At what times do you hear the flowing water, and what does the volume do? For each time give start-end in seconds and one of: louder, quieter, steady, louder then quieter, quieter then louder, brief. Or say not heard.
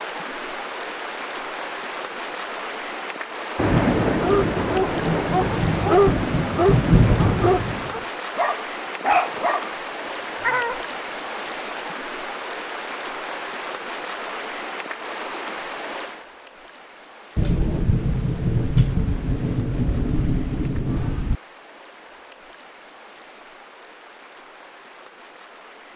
0.0-25.9 quieter.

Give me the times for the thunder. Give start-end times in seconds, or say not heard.
3.5-8.0, 17.4-21.4.